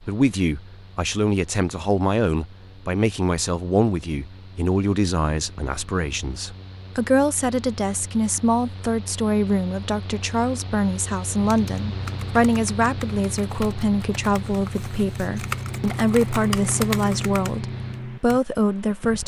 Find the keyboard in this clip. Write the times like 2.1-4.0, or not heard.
11.3-18.4.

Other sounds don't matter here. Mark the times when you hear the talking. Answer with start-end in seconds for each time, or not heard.
0.1-19.2.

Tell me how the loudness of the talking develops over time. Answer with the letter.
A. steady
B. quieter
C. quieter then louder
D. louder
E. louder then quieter
A.